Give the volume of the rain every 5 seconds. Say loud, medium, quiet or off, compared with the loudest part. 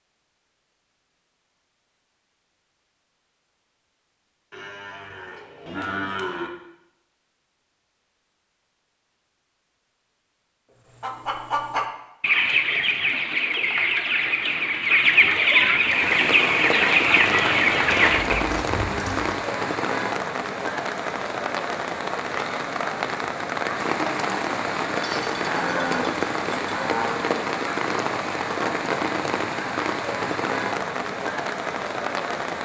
off, off, off, loud, loud, loud, loud.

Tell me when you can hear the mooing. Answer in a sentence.
The mooing can be heard from 4.5 to 6.5 s, from 18.1 to 19.4 s and from 24.9 to 27.2 s.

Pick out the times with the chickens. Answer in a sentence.
The chickens can be heard from 11.0 to 18.4 s.